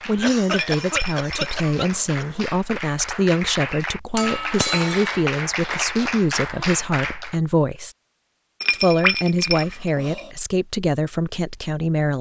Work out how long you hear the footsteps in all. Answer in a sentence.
The footsteps can't be heard in this clip.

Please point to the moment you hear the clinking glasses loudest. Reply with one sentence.
The loudest moment of the clinking glasses is at 9 seconds.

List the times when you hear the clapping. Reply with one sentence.
The clapping can be heard from 0.0 to 7.4 s.